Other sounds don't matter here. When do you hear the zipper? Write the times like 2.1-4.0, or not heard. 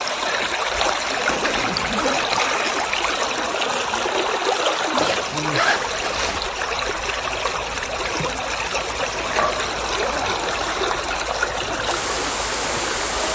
1.1-2.4, 5.0-6.4, 9.2-11.0.